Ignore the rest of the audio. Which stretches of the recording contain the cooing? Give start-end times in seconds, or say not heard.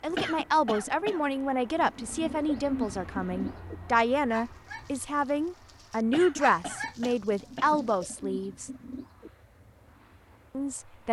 1.8-3.8, 7.3-9.3.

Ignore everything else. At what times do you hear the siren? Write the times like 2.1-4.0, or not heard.
not heard.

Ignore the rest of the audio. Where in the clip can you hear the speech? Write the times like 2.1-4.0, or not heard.
0.0-8.7, 10.6-11.0.